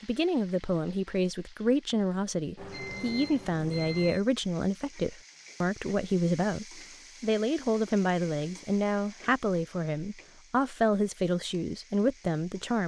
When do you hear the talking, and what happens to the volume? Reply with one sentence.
You can hear the talking from 0.0 to 12.8 s, at a steady volume.